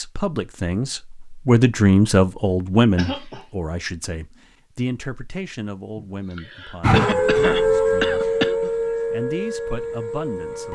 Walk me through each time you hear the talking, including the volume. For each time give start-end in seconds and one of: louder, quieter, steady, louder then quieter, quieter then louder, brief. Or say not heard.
0.0-8.3 quieter
9.1-10.6 brief.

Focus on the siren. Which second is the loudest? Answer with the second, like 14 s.
7 s.